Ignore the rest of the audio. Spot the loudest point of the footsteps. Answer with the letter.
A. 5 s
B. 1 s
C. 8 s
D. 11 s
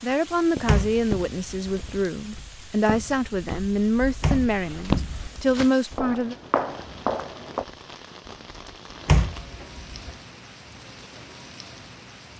A.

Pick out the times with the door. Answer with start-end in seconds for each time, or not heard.
0.7-2.0, 4.2-5.5, 9.1-10.1.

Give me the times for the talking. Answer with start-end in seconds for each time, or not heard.
0.0-6.3.